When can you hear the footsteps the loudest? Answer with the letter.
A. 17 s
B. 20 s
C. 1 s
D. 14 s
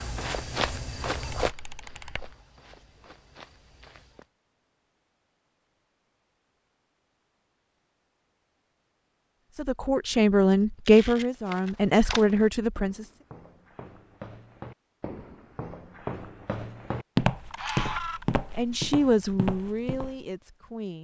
A.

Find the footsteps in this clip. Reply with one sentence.
The footsteps can be heard from 0.0 to 4.2 s and from 11.2 to 20.1 s.